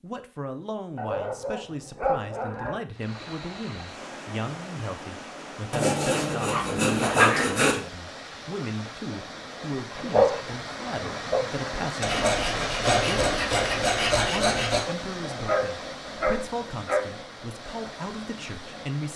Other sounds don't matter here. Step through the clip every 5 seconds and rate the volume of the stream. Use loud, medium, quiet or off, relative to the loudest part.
medium, medium, loud, medium.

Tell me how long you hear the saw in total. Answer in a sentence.
The saw can be heard for 5 seconds in total.